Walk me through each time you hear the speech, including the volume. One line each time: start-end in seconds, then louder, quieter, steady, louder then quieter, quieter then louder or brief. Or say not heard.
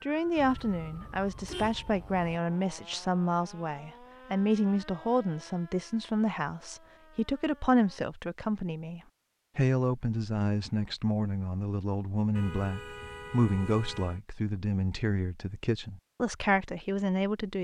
0.0-17.5 steady.